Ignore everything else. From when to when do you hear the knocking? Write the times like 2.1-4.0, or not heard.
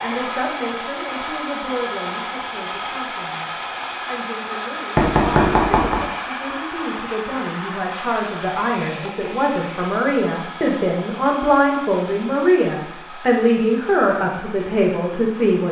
5.0-6.0.